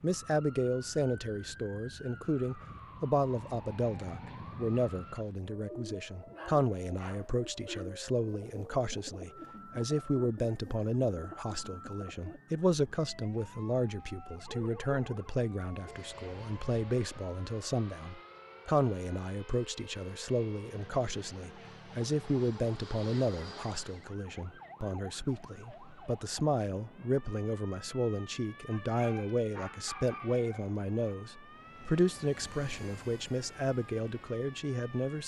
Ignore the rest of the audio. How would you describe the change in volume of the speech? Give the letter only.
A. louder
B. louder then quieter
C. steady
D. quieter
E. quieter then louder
C.